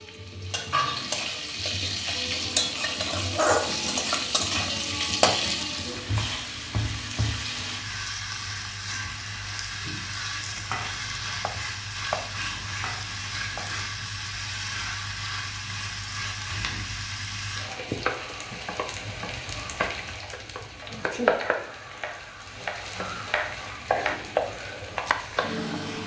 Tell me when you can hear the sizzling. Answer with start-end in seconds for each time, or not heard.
0.0-26.0.